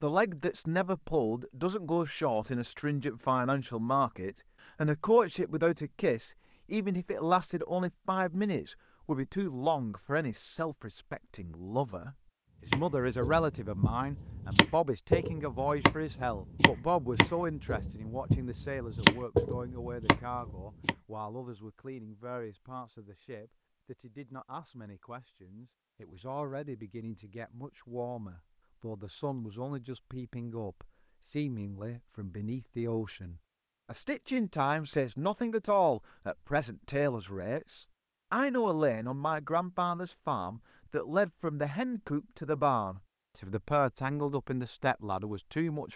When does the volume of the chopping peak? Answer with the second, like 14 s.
19 s.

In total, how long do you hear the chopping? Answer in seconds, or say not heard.
8 s.